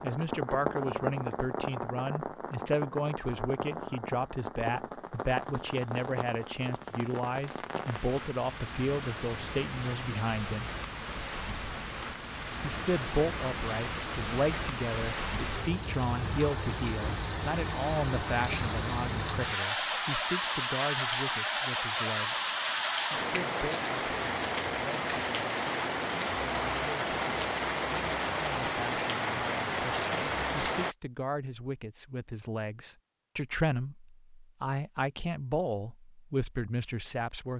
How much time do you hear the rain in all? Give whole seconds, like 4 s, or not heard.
31 s.